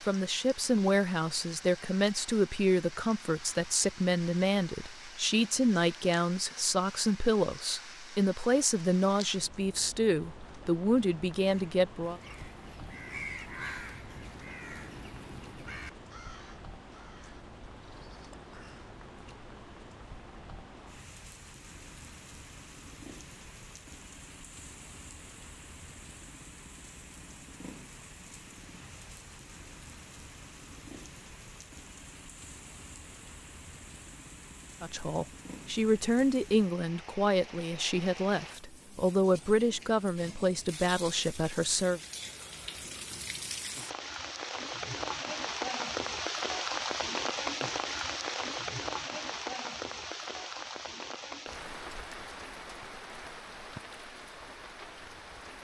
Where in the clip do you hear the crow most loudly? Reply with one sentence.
The volume of the crow peaks at 13 seconds.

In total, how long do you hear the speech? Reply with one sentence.
You can hear the speech for 19 seconds altogether.